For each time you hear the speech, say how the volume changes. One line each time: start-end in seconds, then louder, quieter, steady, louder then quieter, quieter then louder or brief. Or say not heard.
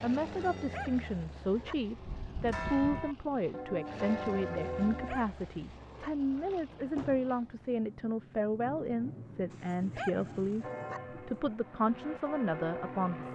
0.0-10.7 steady
11.2-13.2 brief.